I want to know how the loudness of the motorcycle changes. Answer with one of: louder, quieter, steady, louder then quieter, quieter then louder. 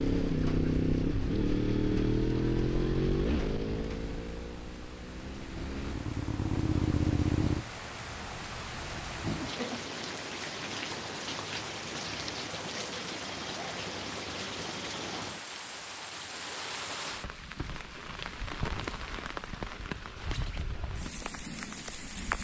quieter then louder.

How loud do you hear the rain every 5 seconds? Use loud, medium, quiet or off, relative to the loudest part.
quiet, loud, loud, loud, loud.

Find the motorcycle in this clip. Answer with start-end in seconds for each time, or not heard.
0.0-7.6.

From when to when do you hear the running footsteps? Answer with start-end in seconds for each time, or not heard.
not heard.